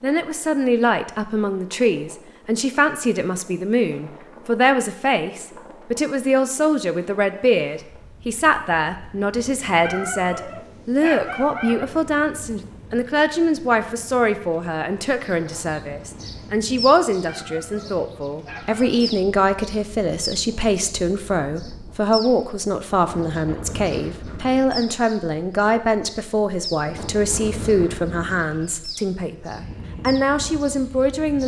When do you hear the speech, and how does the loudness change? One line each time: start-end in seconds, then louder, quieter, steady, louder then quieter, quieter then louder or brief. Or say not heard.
0.0-31.4 steady.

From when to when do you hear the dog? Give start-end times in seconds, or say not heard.
9.8-11.8, 17.2-18.9.